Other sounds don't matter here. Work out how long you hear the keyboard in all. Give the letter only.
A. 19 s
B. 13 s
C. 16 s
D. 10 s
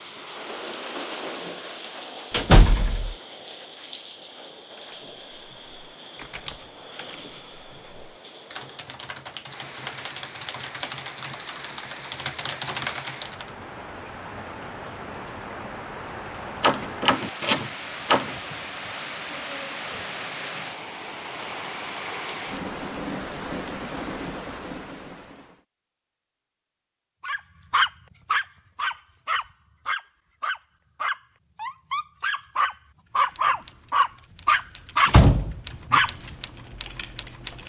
B.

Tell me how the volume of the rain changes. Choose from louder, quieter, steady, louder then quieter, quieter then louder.
quieter then louder.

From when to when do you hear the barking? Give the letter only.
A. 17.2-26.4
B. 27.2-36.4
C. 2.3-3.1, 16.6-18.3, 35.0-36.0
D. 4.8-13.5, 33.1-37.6
B.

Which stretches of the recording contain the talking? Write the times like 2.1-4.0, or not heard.
not heard.